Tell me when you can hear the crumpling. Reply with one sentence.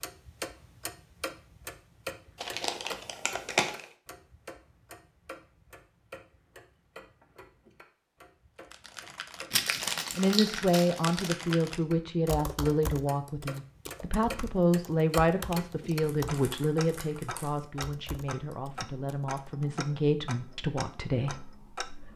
The crumpling can be heard from 2.4 to 3.9 s, from 9.5 to 11.3 s and from 16.0 to 17.6 s.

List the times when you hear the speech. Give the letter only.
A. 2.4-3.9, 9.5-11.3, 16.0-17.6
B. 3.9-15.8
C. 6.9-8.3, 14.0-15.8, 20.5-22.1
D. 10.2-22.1
D.